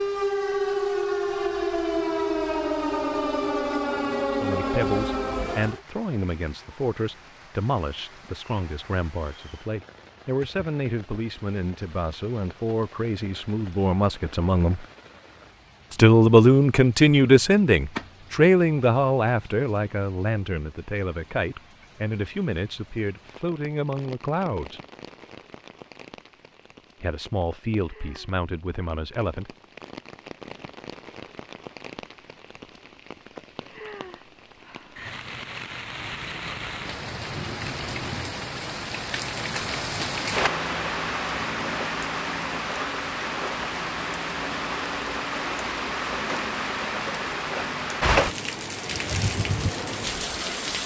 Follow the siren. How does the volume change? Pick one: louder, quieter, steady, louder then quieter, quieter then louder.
steady.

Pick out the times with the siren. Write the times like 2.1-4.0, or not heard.
0.0-5.8.